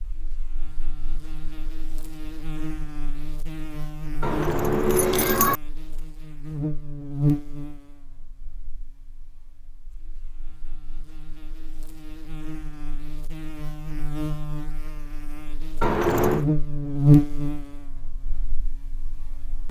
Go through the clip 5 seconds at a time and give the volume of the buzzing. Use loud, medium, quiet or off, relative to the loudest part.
quiet, medium, quiet, loud.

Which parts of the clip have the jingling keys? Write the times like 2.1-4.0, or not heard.
4.2-5.5, 15.8-16.4.